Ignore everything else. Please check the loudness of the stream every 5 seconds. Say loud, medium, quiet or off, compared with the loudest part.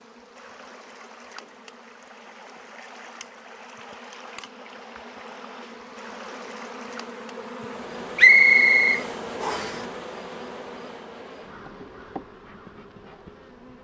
loud, loud, off.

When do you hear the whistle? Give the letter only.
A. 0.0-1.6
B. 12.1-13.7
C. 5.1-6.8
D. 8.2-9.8
D.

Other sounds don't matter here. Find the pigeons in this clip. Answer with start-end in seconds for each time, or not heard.
not heard.